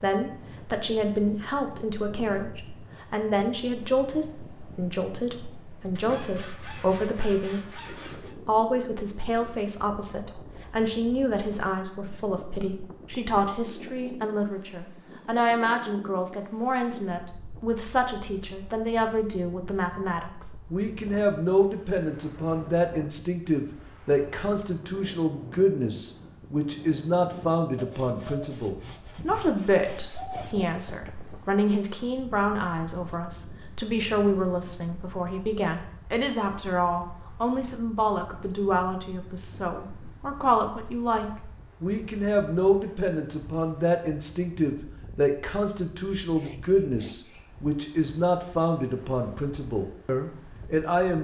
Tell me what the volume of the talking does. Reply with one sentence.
The loudness of the talking stays about the same.